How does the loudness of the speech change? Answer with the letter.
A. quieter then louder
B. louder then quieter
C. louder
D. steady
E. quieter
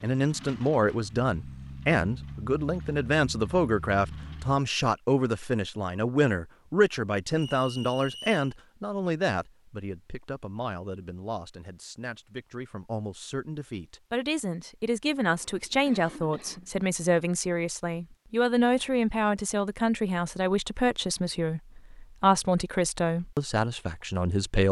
A.